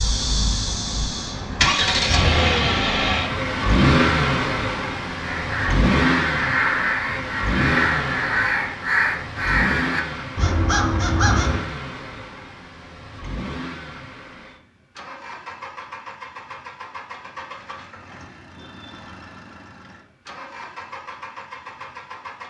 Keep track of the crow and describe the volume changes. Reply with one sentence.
The loudness of the crow stays about the same.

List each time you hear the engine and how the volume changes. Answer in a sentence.
The engine can be heard from 0.0 to 22.4 s, getting quieter.